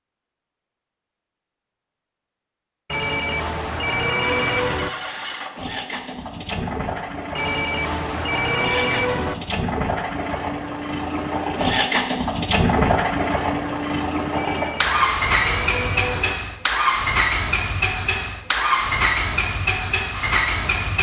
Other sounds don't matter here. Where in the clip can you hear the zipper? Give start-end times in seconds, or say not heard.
not heard.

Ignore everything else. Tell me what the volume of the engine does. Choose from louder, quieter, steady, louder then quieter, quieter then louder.
louder.